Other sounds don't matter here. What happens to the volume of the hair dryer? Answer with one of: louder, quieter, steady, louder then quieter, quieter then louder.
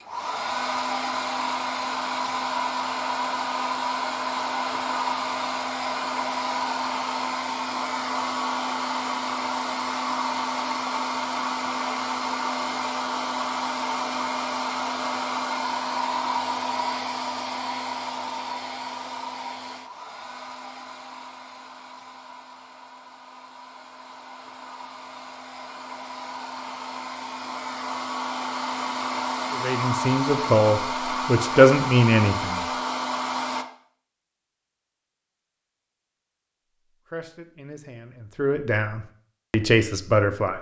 quieter then louder.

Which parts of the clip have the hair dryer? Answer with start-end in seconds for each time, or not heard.
0.0-33.6.